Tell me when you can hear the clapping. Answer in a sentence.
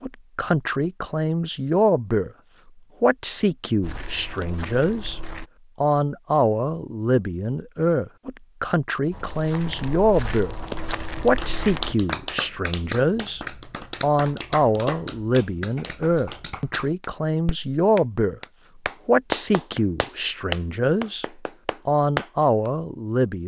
The clapping can be heard from 10.4 to 22.7 s.